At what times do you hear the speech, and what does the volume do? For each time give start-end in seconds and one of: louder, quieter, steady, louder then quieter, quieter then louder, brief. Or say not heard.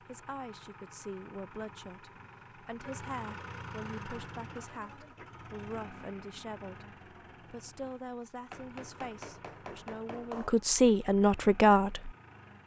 0.0-12.1 louder.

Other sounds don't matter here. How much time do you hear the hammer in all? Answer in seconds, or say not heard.
2 s.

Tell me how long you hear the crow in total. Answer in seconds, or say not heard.
not heard.